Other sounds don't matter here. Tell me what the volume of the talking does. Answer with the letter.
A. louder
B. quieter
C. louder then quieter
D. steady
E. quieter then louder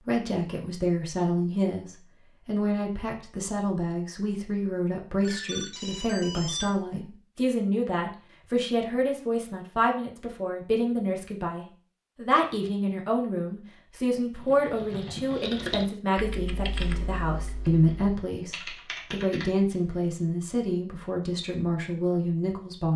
D.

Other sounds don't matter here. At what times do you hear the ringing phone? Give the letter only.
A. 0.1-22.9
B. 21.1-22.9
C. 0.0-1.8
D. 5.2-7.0
D.